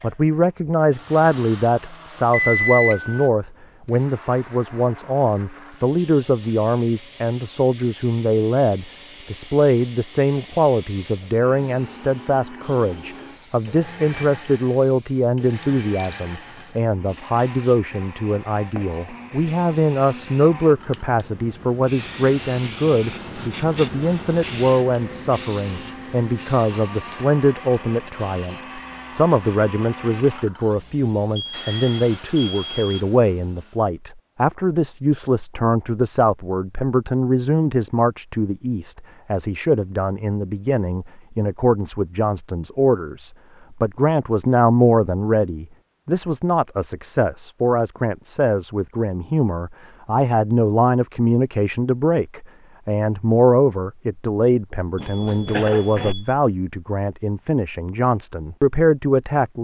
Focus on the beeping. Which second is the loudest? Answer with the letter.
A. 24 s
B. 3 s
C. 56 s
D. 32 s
B.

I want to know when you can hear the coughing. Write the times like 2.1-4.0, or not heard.
55.5-56.1.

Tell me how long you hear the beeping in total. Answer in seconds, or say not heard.
4 s.